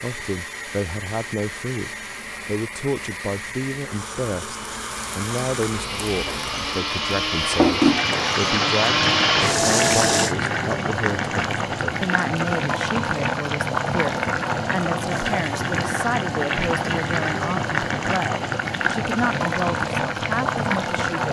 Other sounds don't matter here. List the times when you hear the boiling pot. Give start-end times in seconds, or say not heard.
0.0-21.2.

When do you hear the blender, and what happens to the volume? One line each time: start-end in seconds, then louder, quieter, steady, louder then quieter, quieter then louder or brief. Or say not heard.
0.0-10.3 louder.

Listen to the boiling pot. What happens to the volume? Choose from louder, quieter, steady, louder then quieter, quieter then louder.
louder.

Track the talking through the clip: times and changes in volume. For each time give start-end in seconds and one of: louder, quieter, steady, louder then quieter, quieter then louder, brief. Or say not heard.
0.0-21.2 steady.